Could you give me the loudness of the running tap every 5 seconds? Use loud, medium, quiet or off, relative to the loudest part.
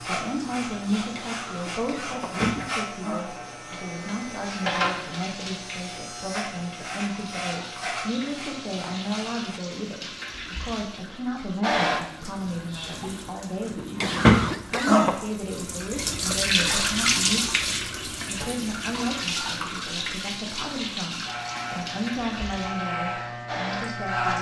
medium, quiet, loud, loud, medium.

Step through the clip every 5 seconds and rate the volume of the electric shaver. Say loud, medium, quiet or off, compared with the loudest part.
loud, medium, off, off, loud.